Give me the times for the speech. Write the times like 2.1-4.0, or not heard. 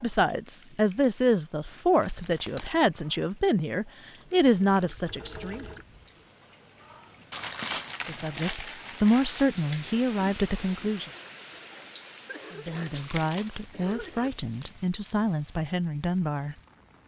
0.0-5.7, 8.1-11.1, 12.5-16.6.